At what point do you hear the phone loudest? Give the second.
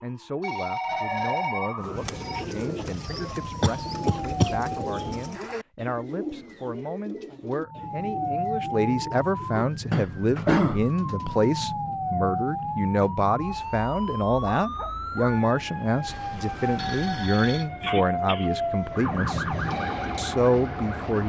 1 s.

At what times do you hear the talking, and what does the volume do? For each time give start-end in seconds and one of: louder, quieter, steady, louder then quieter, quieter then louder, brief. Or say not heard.
0.0-19.4 louder
20.1-21.2 brief.